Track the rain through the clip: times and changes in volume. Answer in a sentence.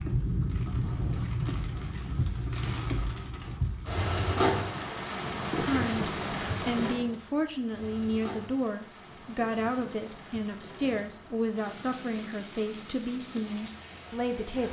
The rain can be heard from 0.0 to 14.6 s, getting quieter.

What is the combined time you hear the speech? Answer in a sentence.
The speech can be heard for 9 seconds in total.